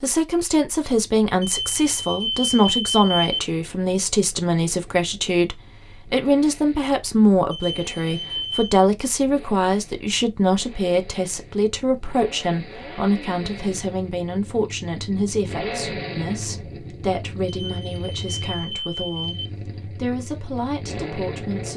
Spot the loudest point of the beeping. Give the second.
3 s.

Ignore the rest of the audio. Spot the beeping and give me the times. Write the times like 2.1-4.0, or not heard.
1.4-3.4, 7.5-8.8, 17.4-19.5.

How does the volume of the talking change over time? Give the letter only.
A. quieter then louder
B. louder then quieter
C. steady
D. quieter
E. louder
D.